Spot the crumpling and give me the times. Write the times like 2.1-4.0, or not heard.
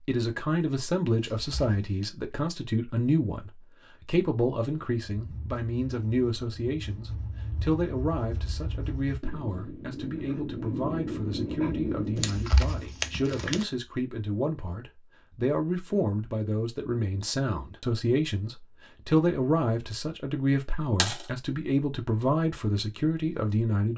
1.1-2.0, 12.2-13.7.